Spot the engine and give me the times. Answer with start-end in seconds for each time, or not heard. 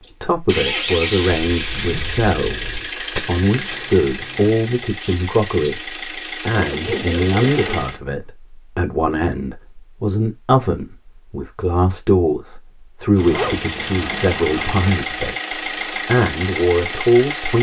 0.1-8.0, 13.2-17.5.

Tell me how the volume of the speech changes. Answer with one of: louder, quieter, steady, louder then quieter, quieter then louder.
steady.